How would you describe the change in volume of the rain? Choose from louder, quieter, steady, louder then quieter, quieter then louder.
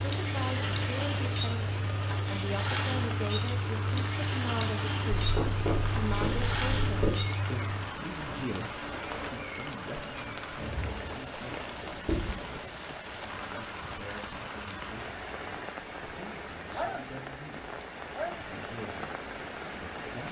steady.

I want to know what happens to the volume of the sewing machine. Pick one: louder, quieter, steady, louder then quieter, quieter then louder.
quieter.